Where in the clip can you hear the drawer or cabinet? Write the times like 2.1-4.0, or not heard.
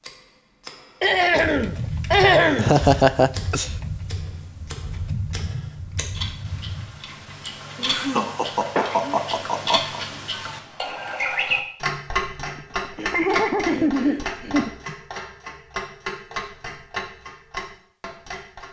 not heard.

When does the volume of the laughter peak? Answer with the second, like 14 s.
3 s.